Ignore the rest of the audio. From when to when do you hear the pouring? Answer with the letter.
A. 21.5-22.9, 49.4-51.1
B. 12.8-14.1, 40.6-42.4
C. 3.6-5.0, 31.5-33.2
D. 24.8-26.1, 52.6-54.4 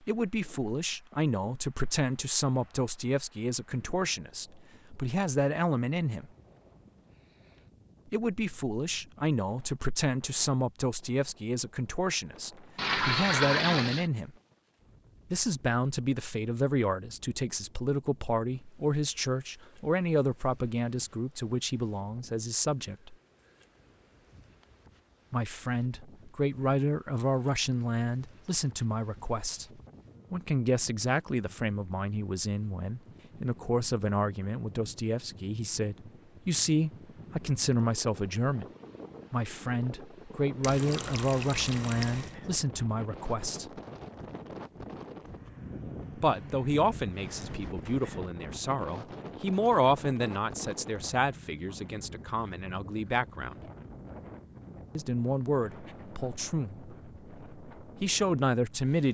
B.